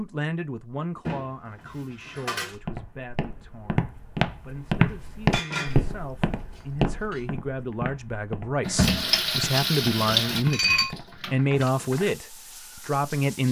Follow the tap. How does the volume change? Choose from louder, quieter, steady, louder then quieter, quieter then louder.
quieter.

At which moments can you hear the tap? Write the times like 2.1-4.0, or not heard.
8.7-13.4.